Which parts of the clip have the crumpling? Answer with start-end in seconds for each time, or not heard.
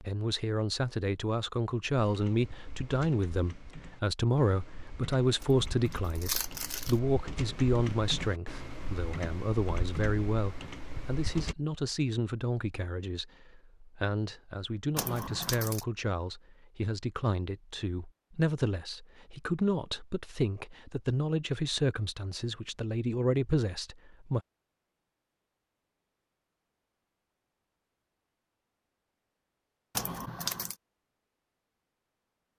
5.4-7.0, 14.9-15.8, 29.9-30.8.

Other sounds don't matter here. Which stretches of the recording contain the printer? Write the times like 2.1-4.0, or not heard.
not heard.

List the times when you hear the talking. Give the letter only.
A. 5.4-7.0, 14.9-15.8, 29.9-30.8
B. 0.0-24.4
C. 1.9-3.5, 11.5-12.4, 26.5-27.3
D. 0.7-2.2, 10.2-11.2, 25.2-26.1
B.